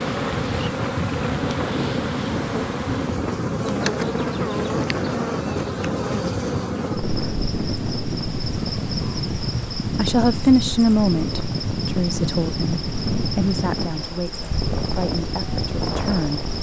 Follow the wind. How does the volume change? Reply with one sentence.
The volume of the wind stays about the same.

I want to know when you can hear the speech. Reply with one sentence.
The speech can be heard from 9.9 to 16.5 s.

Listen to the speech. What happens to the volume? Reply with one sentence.
The volume of the speech goes down.